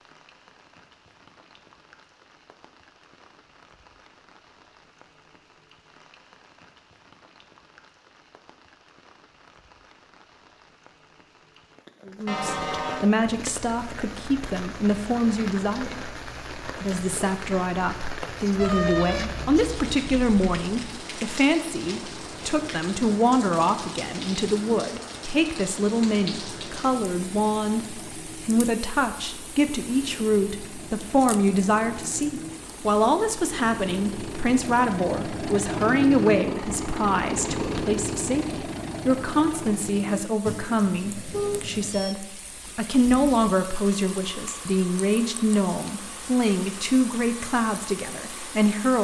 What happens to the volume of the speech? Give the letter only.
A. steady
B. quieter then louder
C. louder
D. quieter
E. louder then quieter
A.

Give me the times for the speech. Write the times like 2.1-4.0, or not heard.
12.1-49.0.